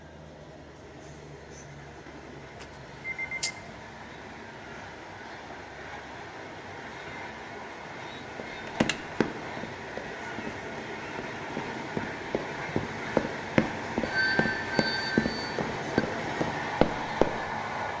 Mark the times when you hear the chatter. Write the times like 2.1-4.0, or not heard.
not heard.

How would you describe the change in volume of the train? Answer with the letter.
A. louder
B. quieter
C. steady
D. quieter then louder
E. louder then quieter
A.